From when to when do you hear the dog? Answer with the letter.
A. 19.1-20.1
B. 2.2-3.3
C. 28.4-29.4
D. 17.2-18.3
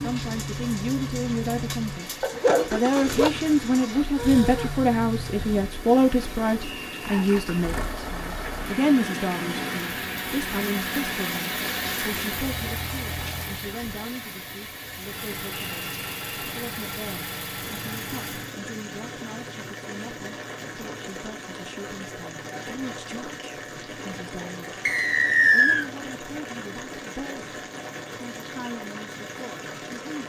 B.